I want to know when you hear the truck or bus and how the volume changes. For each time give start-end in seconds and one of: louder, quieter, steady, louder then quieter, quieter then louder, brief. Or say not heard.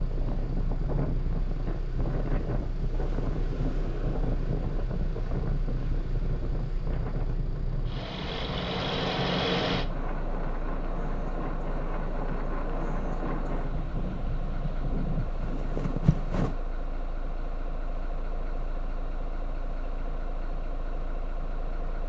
0.0-22.0 louder then quieter.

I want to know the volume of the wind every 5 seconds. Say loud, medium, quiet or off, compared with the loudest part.
loud, medium, medium, loud, off.